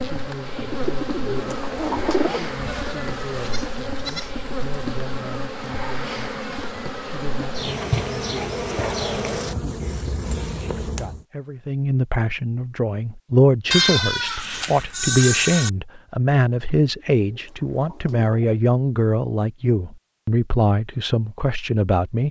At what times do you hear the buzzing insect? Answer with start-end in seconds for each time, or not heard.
0.0-11.2.